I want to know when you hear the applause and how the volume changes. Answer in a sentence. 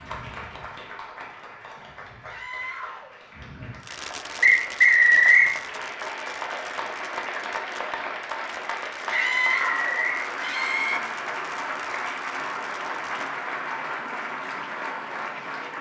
The applause can be heard from 0.0 to 15.7 s, getting louder.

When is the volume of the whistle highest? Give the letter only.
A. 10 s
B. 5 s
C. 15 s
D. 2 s
B.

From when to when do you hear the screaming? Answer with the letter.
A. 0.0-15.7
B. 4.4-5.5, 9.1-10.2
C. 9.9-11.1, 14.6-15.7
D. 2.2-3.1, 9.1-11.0
D.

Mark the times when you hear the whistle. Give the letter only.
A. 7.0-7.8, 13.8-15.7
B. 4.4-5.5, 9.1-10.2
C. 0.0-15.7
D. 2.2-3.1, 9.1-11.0
B.